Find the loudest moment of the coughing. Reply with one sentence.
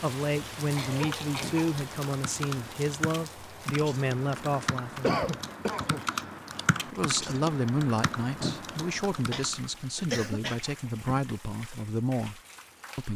The volume of the coughing peaks at 5 seconds.